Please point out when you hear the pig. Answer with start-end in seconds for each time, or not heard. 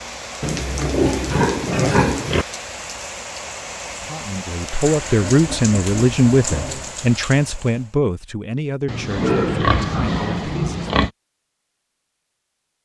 0.4-2.5, 5.2-7.0, 8.8-11.1.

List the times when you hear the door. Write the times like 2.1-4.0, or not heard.
not heard.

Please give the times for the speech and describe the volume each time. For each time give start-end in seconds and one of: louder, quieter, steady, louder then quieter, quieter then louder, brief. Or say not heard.
4.0-10.9 quieter.